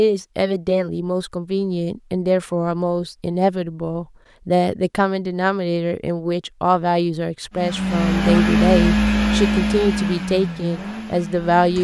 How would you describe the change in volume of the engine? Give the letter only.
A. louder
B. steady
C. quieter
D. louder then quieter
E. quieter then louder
C.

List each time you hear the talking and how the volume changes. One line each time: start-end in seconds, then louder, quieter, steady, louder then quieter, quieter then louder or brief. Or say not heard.
0.0-11.8 steady.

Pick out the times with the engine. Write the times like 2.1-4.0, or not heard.
7.5-11.8.